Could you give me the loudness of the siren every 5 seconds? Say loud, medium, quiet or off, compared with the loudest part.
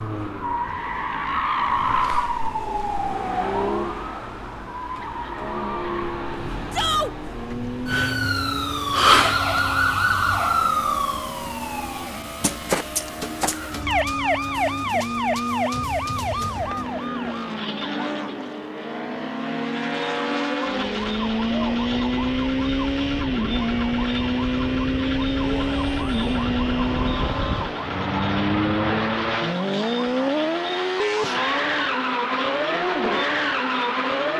medium, loud, loud, medium, medium, medium, medium.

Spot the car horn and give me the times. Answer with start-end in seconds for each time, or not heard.
not heard.